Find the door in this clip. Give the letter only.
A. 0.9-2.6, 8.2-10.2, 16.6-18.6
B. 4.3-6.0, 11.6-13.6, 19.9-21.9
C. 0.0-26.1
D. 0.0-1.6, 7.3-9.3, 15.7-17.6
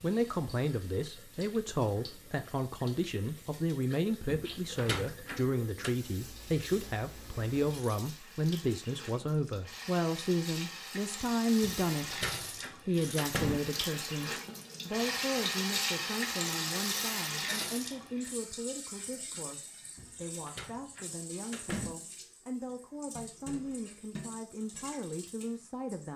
B.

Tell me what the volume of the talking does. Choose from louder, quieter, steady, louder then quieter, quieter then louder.
quieter.